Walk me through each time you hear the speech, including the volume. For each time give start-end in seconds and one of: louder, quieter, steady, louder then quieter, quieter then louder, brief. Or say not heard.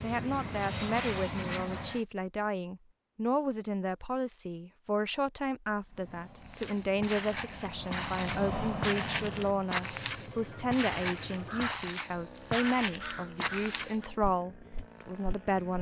0.0-15.7 steady.